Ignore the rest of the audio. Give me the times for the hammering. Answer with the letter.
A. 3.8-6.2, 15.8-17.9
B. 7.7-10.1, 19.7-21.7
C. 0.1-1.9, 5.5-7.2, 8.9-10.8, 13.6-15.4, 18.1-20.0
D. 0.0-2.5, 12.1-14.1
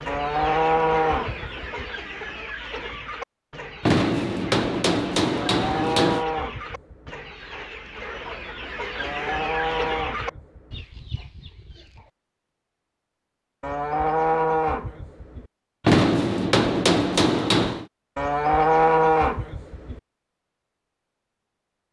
A.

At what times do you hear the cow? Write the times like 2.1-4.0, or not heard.
0.1-1.9, 5.5-7.2, 8.9-10.8, 13.6-15.4, 18.1-20.0.